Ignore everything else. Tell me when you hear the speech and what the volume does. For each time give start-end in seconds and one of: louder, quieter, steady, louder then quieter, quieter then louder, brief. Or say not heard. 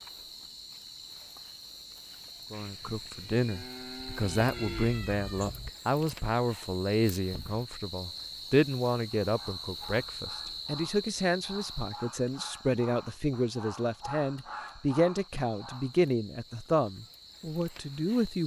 2.5-18.4 steady.